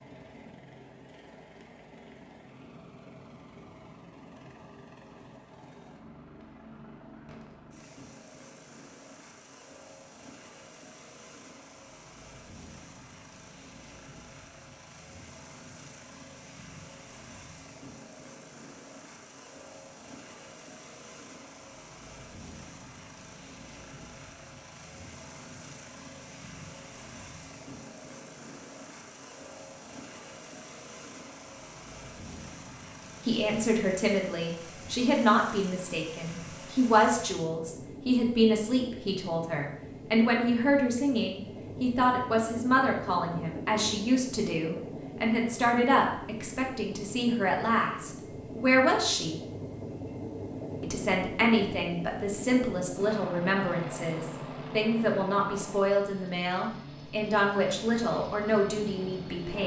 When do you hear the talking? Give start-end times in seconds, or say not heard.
33.2-49.4, 50.8-59.6.